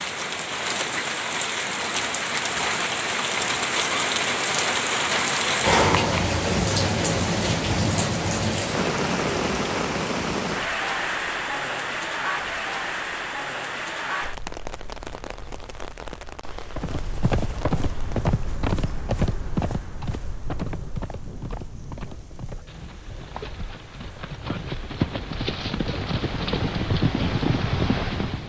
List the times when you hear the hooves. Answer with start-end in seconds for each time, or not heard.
16.6-28.4.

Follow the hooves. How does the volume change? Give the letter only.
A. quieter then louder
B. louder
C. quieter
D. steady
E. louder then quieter
A.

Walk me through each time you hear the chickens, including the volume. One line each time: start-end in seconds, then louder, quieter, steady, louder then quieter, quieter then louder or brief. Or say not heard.
not heard.